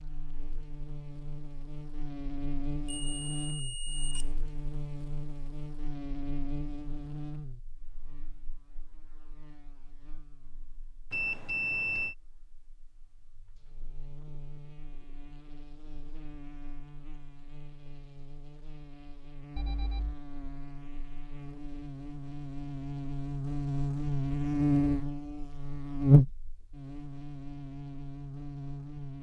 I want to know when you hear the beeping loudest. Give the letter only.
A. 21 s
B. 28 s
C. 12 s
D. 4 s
C.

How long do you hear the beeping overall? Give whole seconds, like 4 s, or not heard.
3 s.